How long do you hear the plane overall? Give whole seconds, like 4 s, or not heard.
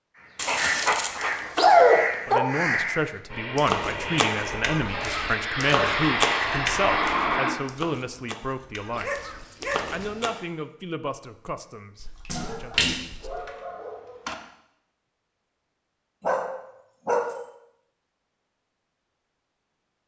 4 s.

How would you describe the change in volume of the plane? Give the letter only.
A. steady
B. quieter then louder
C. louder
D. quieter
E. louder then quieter
C.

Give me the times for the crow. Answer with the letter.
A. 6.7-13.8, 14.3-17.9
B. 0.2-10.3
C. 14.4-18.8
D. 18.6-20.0
B.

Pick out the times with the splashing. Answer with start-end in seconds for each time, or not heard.
12.0-13.3.